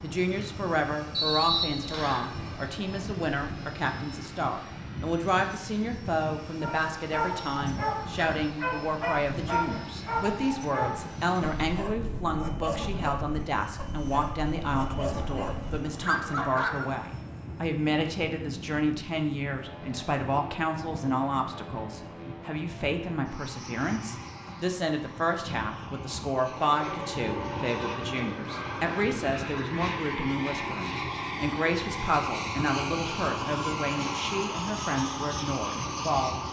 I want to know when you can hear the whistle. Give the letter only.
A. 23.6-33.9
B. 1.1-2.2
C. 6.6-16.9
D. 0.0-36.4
B.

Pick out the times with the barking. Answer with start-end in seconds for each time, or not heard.
6.6-16.9.